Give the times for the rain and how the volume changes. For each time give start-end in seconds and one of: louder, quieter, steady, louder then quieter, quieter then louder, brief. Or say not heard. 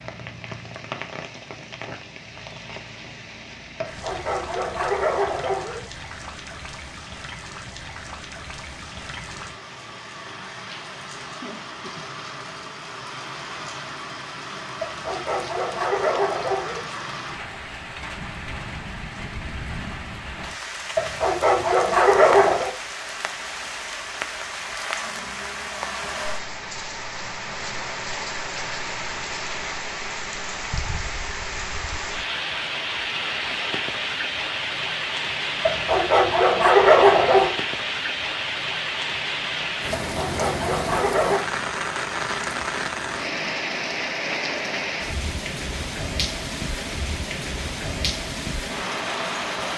0.0-49.7 louder.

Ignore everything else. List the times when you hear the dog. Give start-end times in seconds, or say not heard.
3.8-5.8, 14.8-16.8, 20.9-22.7, 35.6-37.5, 40.0-41.4.